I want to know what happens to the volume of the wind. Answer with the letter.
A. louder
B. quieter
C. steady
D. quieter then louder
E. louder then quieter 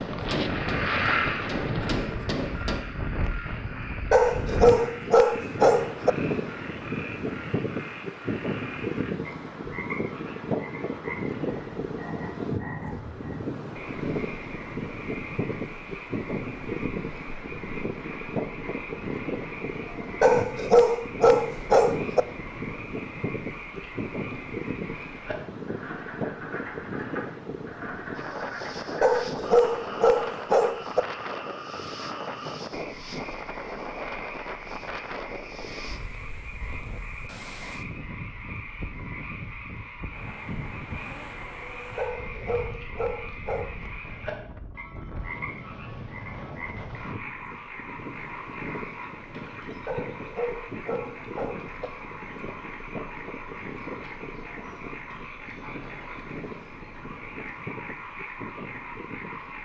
B.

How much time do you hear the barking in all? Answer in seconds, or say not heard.
10 s.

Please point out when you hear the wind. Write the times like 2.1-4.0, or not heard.
0.0-59.5.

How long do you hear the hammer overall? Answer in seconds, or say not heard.
3 s.